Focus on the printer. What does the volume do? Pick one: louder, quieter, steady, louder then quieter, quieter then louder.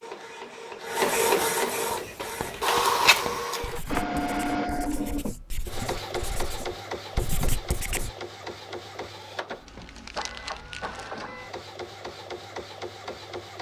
quieter.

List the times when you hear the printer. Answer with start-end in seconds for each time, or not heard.
0.0-13.5.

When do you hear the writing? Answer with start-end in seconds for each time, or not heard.
1.9-8.1.